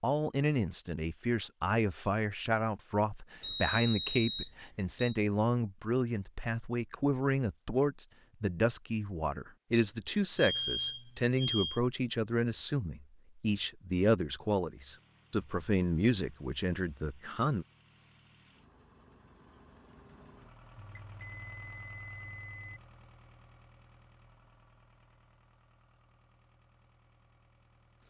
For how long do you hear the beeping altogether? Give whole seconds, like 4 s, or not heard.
5 s.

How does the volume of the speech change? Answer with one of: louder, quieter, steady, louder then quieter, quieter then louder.
steady.